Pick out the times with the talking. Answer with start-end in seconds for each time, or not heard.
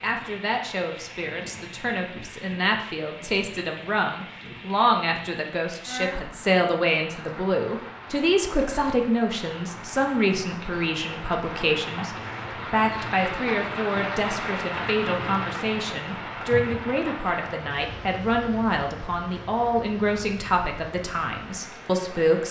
0.0-22.4.